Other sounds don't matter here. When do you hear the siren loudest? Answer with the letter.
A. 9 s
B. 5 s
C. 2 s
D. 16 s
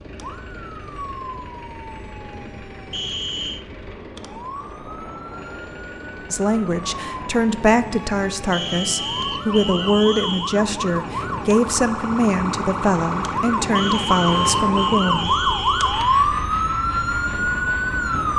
D.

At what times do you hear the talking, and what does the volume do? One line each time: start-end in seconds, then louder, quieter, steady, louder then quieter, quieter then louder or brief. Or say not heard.
6.3-15.3 steady.